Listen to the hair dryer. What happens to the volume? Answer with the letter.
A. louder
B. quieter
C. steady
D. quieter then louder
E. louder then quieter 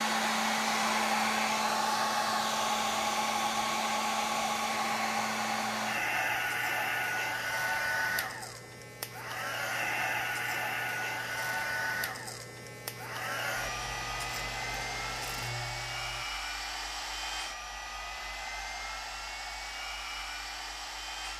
B.